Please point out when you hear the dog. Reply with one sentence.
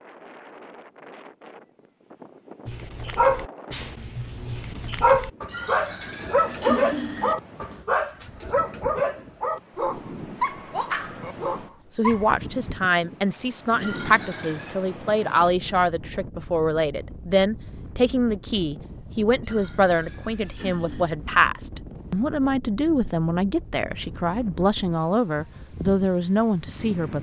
You can hear the dog from 2.6 to 12.3 s.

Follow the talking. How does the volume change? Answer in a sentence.
The volume of the talking stays about the same.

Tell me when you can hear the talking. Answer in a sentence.
The talking can be heard from 11.9 to 27.1 s.